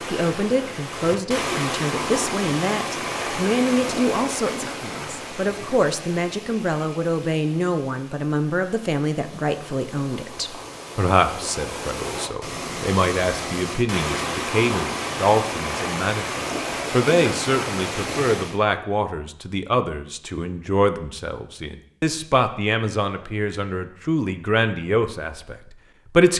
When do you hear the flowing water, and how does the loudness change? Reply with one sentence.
The flowing water can be heard from 0.0 to 18.6 s, getting quieter then louder.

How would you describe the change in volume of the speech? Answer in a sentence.
The volume of the speech stays about the same.